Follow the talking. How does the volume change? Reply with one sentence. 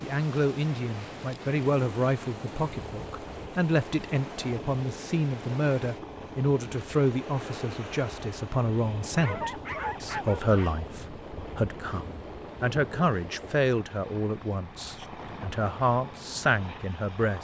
The volume of the talking stays about the same.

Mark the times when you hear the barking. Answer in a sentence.
The barking can be heard from 9.2 to 10.7 s.